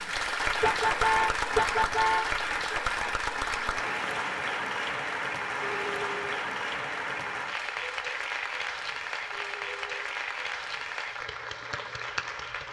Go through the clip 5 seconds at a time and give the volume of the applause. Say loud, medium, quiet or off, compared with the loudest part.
loud, loud, medium.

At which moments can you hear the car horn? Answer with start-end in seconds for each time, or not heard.
0.6-2.4, 5.6-6.4, 9.3-10.1.